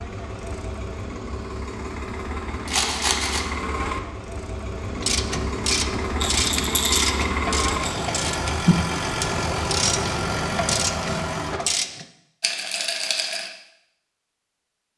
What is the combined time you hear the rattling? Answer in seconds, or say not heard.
4 s.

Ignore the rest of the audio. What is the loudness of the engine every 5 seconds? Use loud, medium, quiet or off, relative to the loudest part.
medium, loud, loud.